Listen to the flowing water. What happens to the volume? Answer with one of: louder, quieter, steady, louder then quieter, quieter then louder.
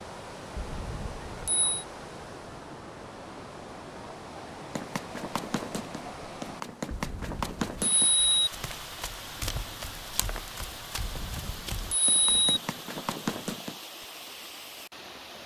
steady.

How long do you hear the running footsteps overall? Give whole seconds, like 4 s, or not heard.
9 s.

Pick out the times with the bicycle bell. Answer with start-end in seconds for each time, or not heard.
0.6-1.7, 6.9-8.5, 11.0-12.6.